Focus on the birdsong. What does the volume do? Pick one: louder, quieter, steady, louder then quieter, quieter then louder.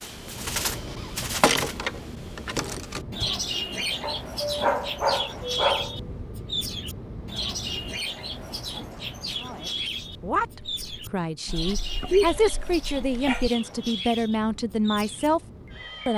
quieter.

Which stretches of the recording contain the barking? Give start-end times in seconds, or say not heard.
4.0-6.0, 11.7-13.5.